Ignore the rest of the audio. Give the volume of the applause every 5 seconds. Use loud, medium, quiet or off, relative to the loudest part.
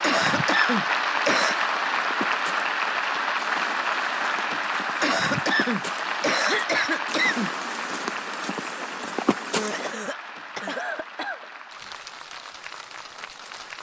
loud, medium, quiet.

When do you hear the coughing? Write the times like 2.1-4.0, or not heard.
0.0-1.6, 5.0-7.5, 9.6-11.4.